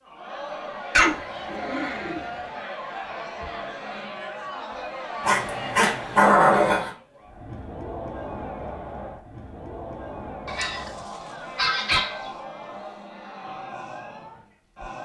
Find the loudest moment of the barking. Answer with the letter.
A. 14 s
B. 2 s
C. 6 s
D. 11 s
C.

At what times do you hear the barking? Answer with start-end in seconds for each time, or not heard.
0.9-2.2, 5.2-6.9, 10.4-12.3.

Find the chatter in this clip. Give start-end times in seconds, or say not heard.
0.0-15.0.